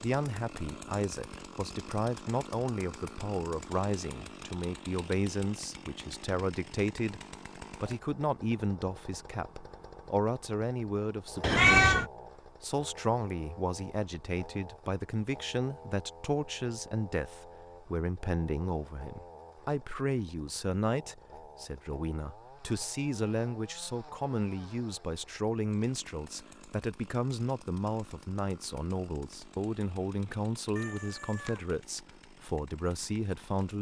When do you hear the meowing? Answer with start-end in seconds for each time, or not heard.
11.4-12.1, 30.8-31.6.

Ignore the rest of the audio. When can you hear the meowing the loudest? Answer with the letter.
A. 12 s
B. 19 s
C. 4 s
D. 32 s
A.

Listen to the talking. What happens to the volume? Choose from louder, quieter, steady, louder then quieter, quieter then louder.
steady.